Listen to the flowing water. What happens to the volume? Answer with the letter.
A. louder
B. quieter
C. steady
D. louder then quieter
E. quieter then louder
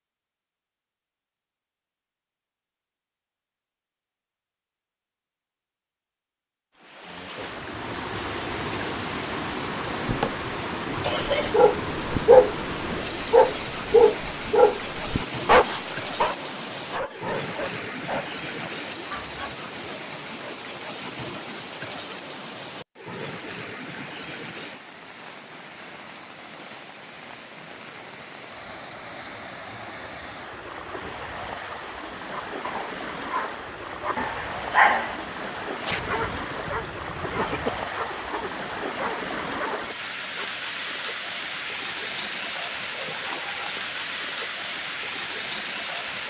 E.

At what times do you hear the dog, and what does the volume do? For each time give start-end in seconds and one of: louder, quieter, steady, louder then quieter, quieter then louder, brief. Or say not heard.
11.4-19.6 quieter
32.3-40.5 louder then quieter.